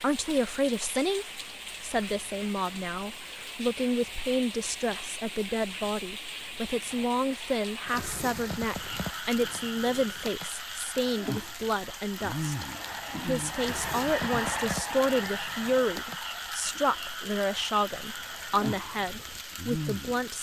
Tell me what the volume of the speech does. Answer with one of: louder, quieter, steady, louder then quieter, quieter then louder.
steady.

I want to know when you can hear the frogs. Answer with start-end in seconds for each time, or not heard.
8.7-20.3.